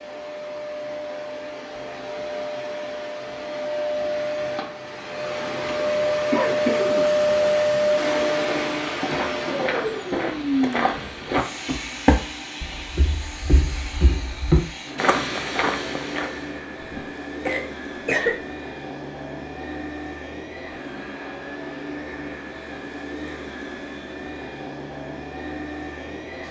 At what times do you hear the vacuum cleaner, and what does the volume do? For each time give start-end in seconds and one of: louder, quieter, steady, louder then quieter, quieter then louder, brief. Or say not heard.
0.0-26.4 louder then quieter.